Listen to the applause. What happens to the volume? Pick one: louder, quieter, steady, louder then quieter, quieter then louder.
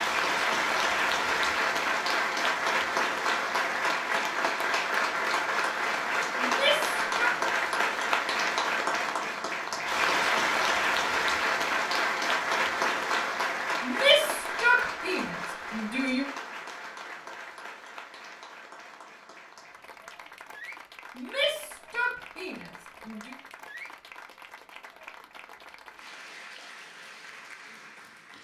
quieter.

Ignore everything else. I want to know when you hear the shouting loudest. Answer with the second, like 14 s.
14 s.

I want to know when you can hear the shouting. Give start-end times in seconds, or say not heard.
6.4-7.3, 13.8-16.2, 21.1-23.3.